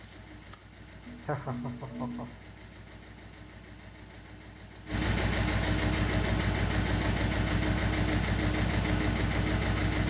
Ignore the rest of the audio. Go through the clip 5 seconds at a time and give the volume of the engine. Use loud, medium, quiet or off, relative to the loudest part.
quiet, loud.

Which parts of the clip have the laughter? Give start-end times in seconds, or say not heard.
1.1-2.4.